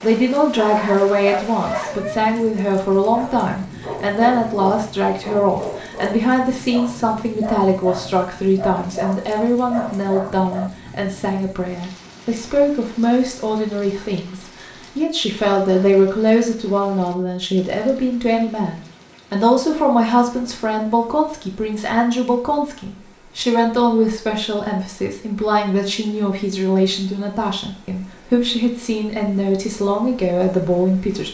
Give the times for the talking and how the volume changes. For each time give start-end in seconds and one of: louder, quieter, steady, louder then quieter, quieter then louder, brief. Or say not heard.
0.0-31.2 steady.